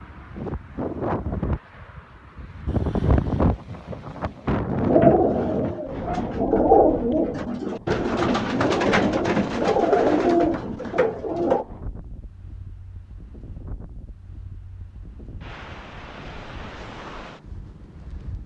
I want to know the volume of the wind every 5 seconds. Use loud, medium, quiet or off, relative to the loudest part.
loud, medium, quiet, quiet.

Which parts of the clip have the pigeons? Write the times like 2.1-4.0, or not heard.
4.7-11.7.